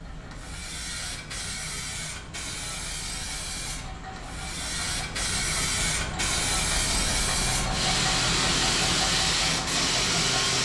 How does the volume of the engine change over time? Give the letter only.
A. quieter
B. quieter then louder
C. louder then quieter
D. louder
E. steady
D.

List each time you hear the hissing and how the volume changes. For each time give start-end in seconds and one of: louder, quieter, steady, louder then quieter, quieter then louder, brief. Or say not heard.
0.0-10.5 louder.